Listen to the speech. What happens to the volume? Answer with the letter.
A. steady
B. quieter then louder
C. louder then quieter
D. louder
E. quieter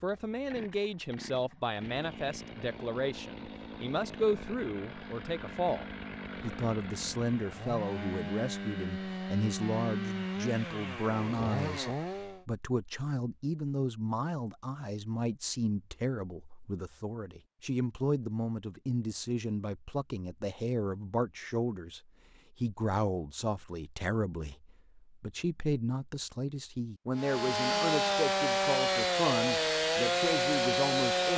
A.